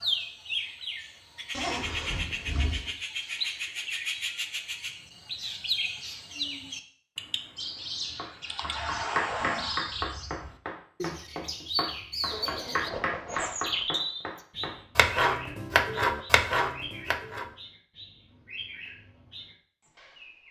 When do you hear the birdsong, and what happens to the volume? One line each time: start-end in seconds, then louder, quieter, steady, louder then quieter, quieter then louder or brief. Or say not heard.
0.0-20.4 quieter.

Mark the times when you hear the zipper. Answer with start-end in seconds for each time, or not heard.
1.5-2.9, 12.2-13.8.